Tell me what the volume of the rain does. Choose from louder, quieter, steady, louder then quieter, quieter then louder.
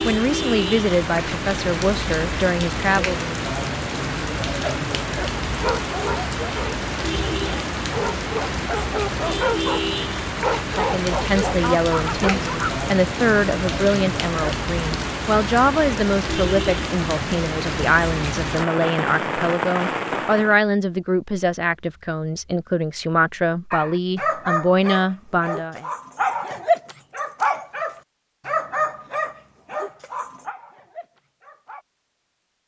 steady.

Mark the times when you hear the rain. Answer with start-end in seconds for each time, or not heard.
0.0-20.6.